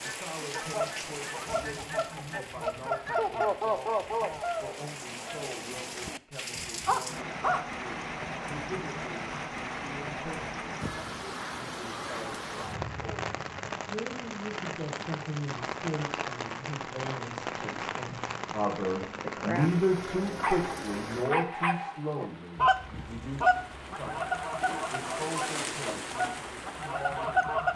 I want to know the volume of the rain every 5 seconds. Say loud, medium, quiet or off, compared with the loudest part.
medium, loud, loud, loud, medium, loud.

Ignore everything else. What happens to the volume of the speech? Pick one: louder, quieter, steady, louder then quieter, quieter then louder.
louder then quieter.